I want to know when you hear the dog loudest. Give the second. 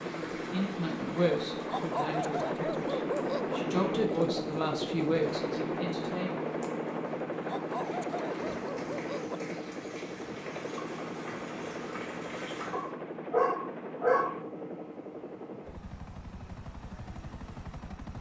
14 s.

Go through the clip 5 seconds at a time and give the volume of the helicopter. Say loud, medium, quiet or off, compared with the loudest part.
loud, loud, medium, medium.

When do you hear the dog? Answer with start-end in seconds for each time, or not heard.
1.6-3.6, 7.5-9.4, 12.7-14.4.